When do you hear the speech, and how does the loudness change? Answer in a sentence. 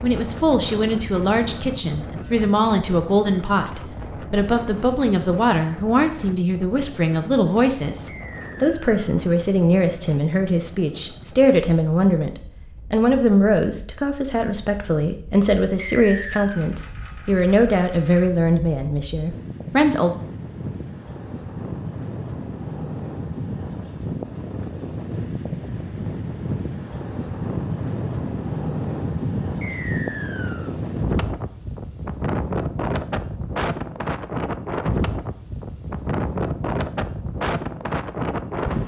The speech can be heard from 0.0 to 20.1 s, at a steady volume.